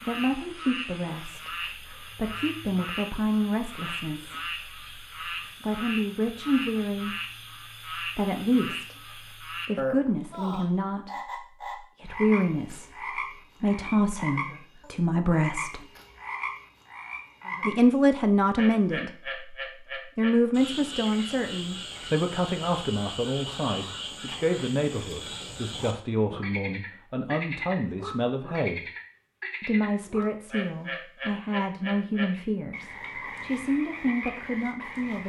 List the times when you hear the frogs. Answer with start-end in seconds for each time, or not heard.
0.0-35.2.